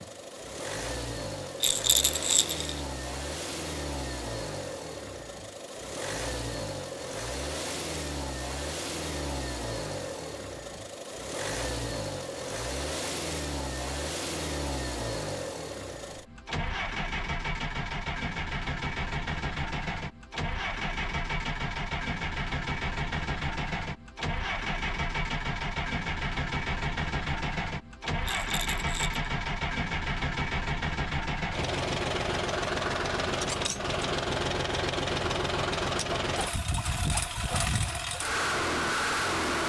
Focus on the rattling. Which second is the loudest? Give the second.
2 s.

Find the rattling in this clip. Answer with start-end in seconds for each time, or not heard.
1.6-2.8, 28.2-29.2.